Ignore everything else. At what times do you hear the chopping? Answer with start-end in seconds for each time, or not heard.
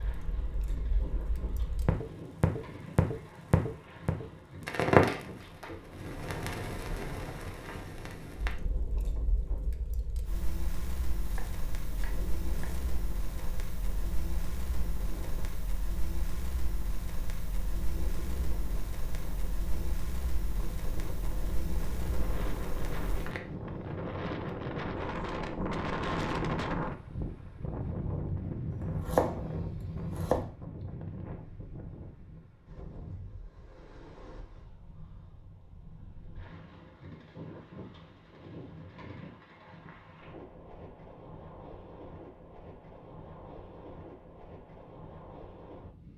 11.2-12.9, 28.7-30.5.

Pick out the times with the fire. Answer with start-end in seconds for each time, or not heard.
0.0-23.4.